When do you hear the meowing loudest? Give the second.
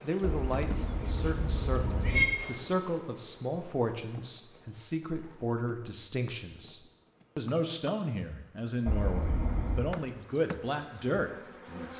2 s.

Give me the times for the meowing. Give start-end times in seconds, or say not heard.
0.2-2.2, 8.8-9.8.